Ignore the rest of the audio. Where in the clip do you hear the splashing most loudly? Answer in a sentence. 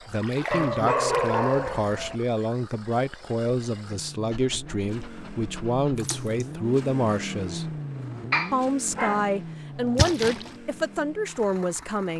The volume of the splashing peaks at 10 seconds.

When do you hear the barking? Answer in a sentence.
The barking can be heard from 0.5 to 2.2 s, from 4.3 to 6.1 s and from 8.3 to 10.1 s.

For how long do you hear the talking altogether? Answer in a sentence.
The talking can be heard for 11 seconds in total.